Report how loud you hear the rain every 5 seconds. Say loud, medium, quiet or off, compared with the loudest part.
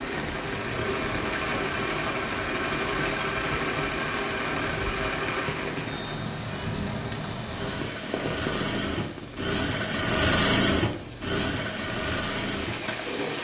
loud, loud, medium.